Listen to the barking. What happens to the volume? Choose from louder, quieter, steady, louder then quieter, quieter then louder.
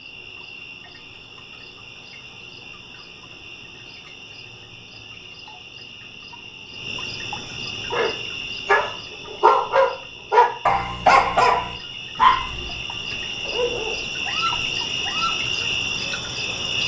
quieter.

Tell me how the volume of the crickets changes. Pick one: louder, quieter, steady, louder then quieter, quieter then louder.
louder.